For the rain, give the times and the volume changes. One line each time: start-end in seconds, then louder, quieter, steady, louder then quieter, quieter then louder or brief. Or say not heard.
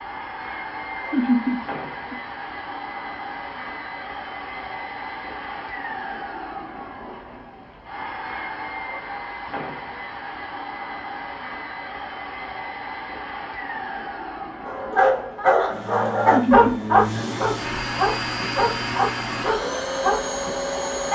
not heard.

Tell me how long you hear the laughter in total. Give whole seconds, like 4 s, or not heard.
2 s.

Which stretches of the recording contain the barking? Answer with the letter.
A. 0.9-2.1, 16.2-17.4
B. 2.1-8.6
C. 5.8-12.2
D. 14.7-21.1
D.